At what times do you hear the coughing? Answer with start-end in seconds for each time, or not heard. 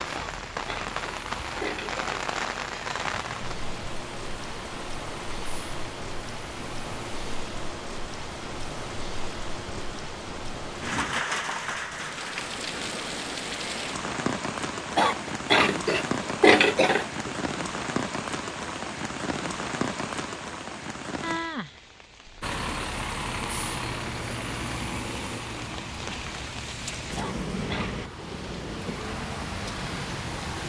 0.1-2.2, 14.9-17.3, 27.1-28.0.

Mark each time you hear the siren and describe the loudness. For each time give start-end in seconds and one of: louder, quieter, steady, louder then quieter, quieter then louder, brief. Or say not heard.
not heard.